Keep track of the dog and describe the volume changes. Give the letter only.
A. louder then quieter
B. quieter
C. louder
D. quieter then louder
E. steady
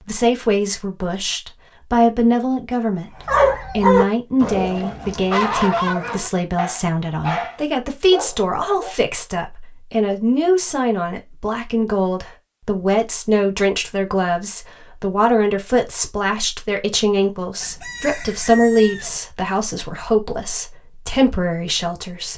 B.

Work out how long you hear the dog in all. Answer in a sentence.
You can hear the dog for 6 seconds altogether.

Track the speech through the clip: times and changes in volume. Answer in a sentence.
You can hear the speech from 0.1 to 22.3 s, at a steady volume.